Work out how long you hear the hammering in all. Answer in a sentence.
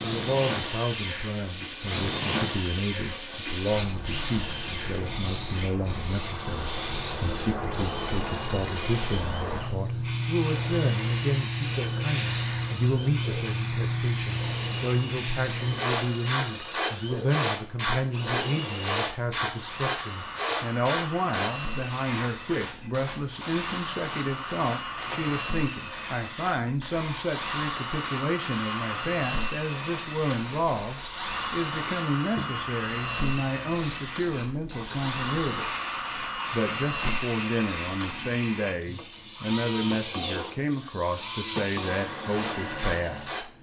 You can't hear the hammering here.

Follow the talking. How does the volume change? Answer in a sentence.
The loudness of the talking stays about the same.